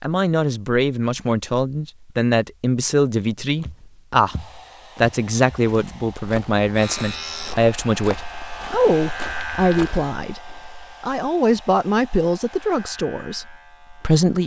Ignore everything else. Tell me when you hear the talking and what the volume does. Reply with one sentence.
The talking can be heard from 0.0 to 14.4 s, at a steady volume.